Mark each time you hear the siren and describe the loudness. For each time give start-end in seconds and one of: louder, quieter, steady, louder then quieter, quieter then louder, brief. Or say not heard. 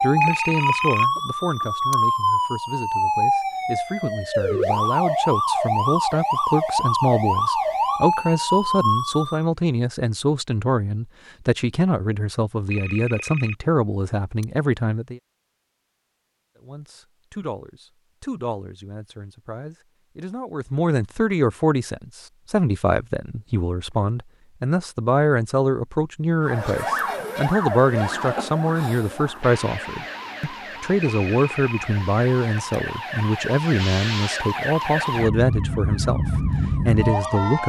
0.0-9.4 steady
26.4-37.6 quieter then louder.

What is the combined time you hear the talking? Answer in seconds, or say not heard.
36 s.